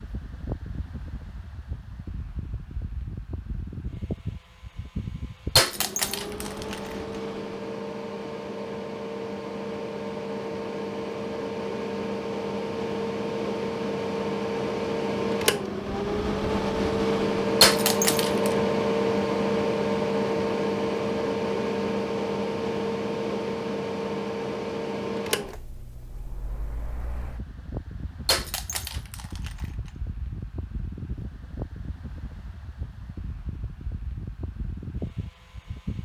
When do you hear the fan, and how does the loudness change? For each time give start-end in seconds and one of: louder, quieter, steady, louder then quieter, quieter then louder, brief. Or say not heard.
0.0-36.0 louder then quieter.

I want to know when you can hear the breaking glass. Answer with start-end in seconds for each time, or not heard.
5.5-6.9, 17.6-18.5, 28.2-29.5.